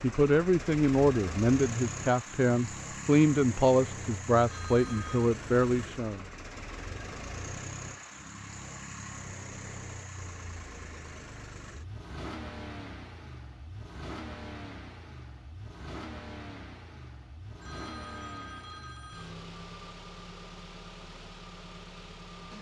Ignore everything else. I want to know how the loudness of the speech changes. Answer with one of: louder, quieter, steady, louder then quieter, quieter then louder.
steady.